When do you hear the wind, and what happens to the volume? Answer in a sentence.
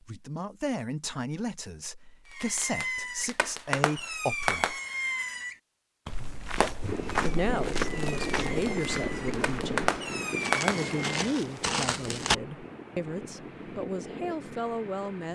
You can hear the wind from 6.8 to 15.3 s, getting quieter.